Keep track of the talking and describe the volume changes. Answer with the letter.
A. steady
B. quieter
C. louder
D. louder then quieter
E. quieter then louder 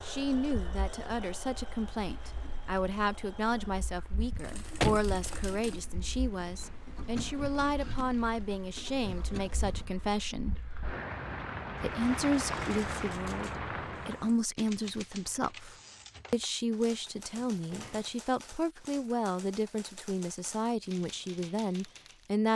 A.